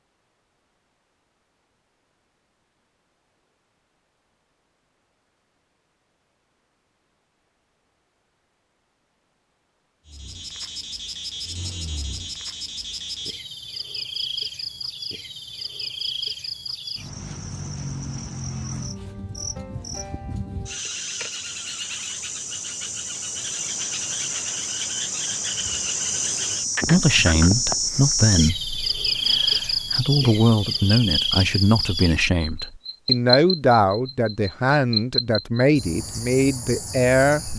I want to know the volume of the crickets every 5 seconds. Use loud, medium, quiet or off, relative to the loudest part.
off, off, medium, medium, medium, loud, loud, medium.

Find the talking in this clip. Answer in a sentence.
The talking can be heard from 26.9 to 37.5 s.